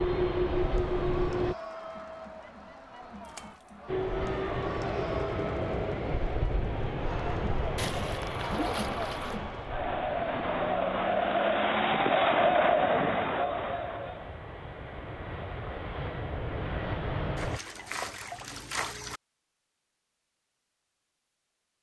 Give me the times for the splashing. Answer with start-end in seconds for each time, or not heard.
3.2-3.7, 7.8-9.4, 17.4-19.2.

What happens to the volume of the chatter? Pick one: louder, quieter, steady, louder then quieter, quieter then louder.
louder.